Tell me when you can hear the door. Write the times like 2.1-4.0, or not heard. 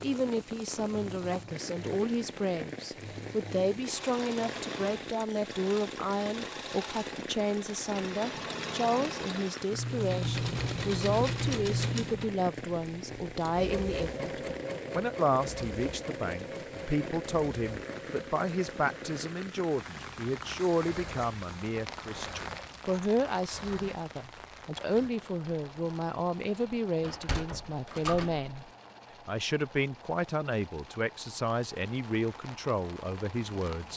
27.0-28.5.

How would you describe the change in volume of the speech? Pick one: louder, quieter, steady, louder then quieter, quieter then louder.
steady.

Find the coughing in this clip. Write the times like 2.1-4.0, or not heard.
not heard.